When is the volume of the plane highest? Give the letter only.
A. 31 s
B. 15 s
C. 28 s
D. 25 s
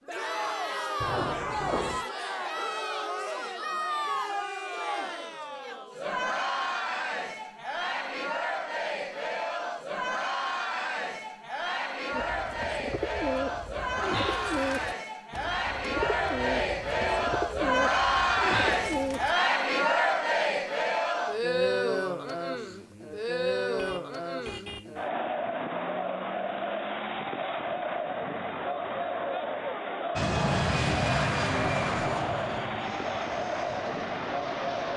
A.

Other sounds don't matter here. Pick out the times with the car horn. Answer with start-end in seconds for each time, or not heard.
1.0-2.0, 15.9-17.4, 23.6-24.9.